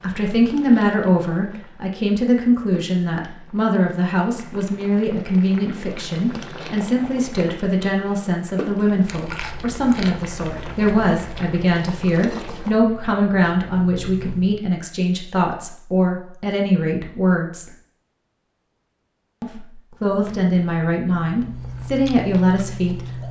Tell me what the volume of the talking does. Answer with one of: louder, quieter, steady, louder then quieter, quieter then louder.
steady.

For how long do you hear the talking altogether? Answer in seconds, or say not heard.
21 s.